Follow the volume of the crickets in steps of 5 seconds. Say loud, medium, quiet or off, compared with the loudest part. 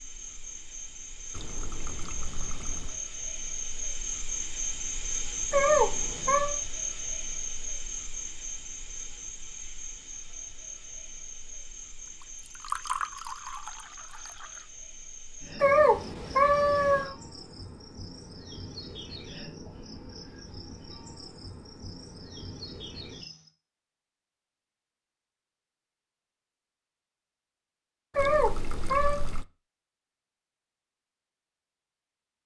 loud, loud, medium, medium, medium, off, off.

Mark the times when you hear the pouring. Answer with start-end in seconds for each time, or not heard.
1.3-3.0, 12.6-14.4, 28.1-29.4.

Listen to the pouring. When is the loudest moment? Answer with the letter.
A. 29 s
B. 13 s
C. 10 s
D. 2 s
B.